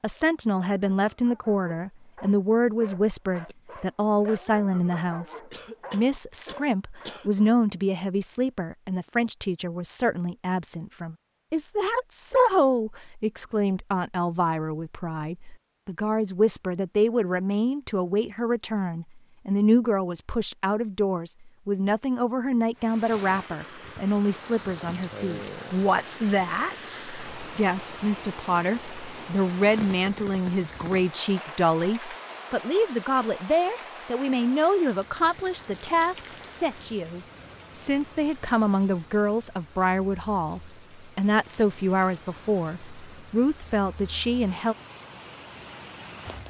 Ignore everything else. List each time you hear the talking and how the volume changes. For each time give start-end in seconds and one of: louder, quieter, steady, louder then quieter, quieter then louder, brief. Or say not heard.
0.0-44.8 steady.